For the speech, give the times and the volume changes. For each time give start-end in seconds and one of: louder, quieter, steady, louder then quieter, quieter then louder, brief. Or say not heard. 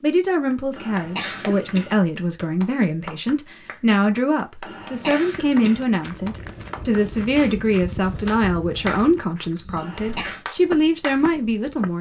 0.0-11.9 steady.